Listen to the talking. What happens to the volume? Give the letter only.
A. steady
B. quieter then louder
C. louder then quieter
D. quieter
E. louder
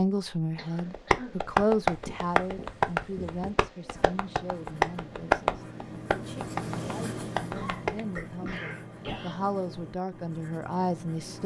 B.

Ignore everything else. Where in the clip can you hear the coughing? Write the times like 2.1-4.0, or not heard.
0.6-1.4, 7.3-9.4.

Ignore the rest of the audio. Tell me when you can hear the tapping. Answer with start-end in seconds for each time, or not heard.
0.8-8.0.